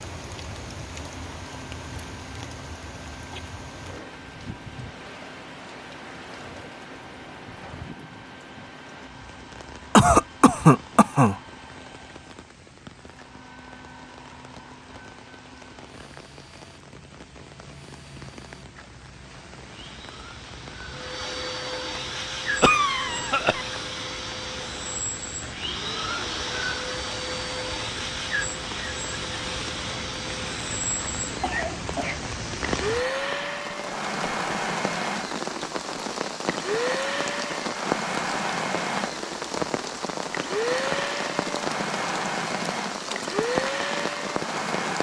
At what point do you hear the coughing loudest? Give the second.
10 s.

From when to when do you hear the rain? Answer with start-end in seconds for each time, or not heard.
0.0-44.9.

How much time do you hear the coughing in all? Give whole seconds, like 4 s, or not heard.
3 s.